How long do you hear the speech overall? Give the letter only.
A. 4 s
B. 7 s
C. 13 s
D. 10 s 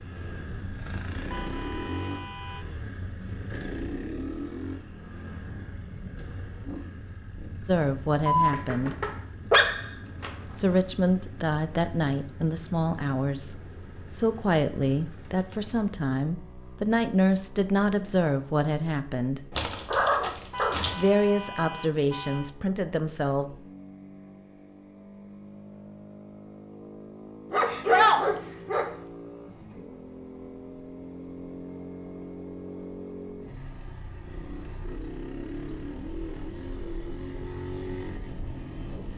C.